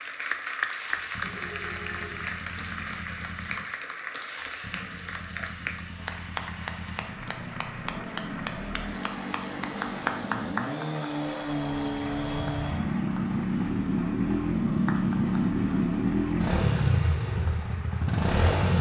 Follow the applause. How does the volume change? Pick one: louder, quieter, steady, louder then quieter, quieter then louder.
quieter.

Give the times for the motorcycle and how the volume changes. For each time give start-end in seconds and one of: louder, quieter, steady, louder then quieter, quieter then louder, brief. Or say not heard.
0.0-18.7 louder.